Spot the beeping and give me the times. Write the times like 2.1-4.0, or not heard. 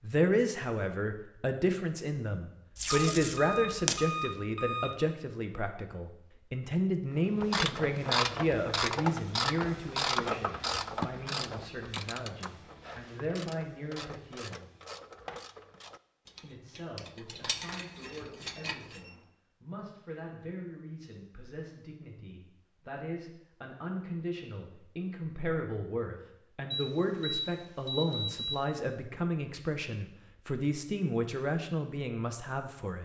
2.9-5.0, 18.1-19.2, 26.7-28.6.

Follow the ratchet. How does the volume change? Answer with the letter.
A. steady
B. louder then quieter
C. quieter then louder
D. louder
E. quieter
E.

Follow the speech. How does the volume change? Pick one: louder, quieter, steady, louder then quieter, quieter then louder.
quieter then louder.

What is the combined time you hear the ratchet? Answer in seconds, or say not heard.
12 s.